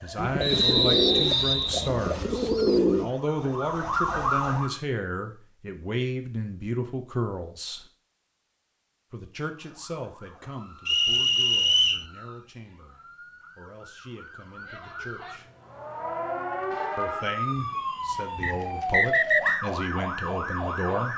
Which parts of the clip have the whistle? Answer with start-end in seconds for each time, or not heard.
0.4-1.9, 10.8-12.1, 18.4-19.6.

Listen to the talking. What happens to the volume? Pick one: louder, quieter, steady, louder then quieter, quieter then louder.
quieter then louder.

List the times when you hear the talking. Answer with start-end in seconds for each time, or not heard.
0.0-7.8, 9.1-15.5, 16.9-21.1.